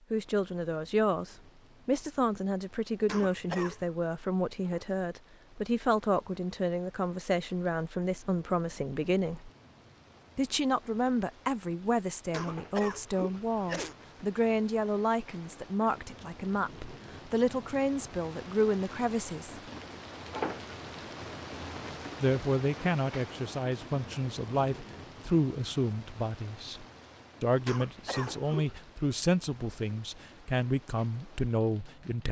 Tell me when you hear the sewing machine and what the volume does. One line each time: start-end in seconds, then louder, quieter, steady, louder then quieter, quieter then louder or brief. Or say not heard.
not heard.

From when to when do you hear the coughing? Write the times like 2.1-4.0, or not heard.
3.0-4.0, 12.3-13.9, 27.6-28.8.